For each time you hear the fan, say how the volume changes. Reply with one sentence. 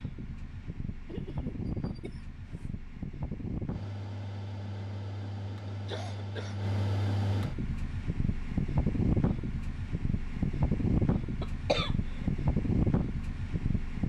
The fan can be heard from 0.0 to 14.0 s, getting louder.